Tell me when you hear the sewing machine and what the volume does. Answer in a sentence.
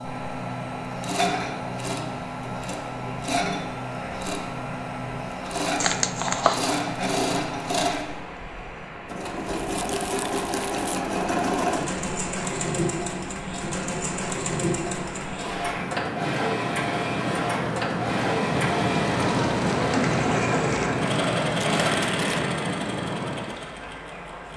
You can hear the sewing machine from 0.0 to 24.5 s, at a steady volume.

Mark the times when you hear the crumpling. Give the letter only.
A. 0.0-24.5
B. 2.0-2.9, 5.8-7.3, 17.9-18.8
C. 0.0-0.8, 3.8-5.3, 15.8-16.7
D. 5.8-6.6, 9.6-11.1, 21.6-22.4
D.